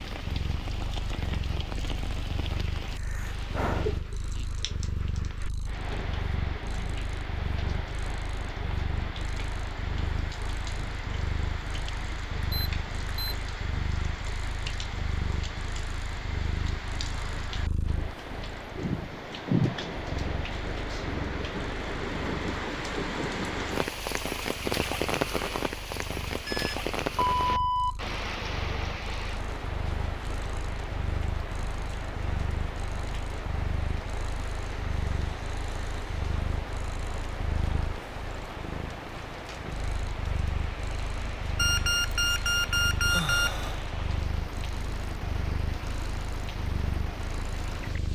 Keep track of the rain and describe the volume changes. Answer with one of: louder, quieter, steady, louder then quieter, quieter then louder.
louder then quieter.